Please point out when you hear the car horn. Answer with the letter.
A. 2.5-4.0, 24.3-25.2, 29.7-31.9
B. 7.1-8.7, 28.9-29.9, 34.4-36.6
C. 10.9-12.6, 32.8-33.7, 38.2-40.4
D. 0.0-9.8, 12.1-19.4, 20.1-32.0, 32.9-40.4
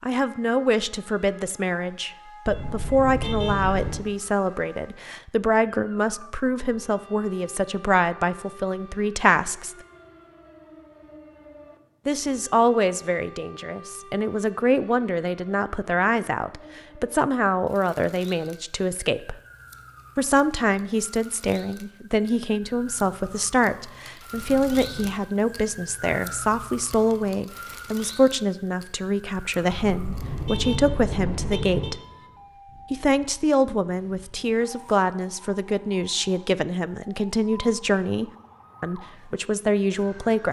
A.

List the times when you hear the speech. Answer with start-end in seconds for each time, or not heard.
0.0-9.8, 12.1-19.4, 20.1-32.0, 32.9-40.4.